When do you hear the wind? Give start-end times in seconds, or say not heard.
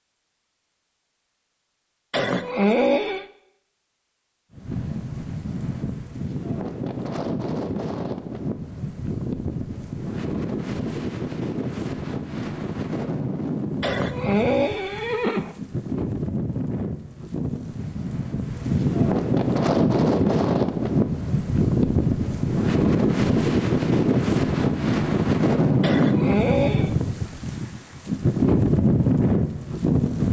4.5-30.2.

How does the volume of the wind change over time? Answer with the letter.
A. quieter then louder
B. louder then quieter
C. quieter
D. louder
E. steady
D.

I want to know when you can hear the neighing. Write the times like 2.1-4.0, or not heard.
2.1-3.2, 13.8-15.6, 25.8-26.9.